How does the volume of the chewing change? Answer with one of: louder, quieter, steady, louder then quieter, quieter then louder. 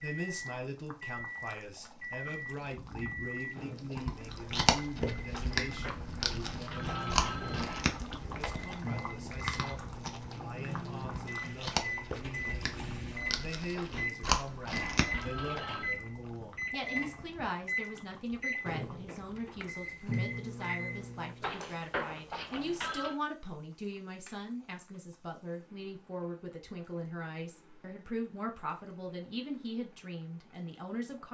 quieter then louder.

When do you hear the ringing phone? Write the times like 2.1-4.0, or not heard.
5.3-8.0, 13.8-15.9, 21.4-23.1.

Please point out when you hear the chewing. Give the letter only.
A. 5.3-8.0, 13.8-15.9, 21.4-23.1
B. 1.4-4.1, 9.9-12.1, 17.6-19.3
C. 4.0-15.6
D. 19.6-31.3
C.